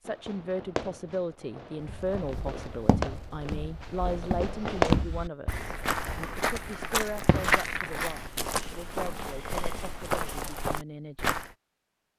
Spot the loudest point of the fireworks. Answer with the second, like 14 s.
5 s.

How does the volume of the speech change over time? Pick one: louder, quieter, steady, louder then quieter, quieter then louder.
quieter.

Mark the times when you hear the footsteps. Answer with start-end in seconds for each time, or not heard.
1.8-11.6.